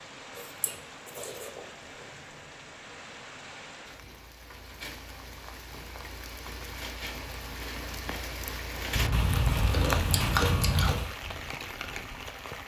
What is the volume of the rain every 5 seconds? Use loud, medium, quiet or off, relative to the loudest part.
medium, loud, loud.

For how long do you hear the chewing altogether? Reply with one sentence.
The chewing can be heard for 4 seconds in total.